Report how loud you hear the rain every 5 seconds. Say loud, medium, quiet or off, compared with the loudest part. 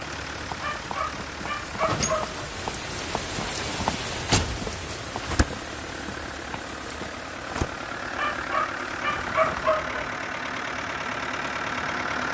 loud, medium, off.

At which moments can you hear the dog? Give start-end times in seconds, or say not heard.
0.6-2.4, 8.2-10.0.